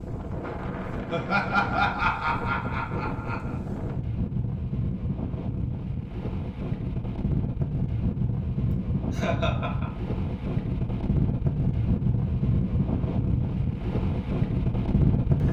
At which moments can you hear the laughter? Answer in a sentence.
You can hear the laughter from 1.1 to 3.5 s and from 8.7 to 9.9 s.